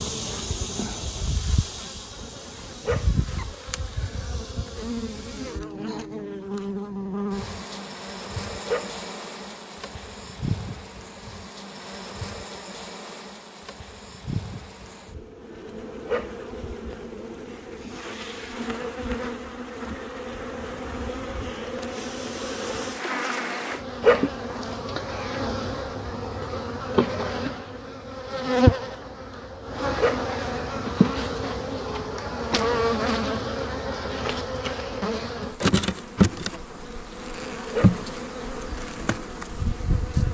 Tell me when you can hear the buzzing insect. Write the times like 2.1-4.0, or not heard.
0.0-40.3.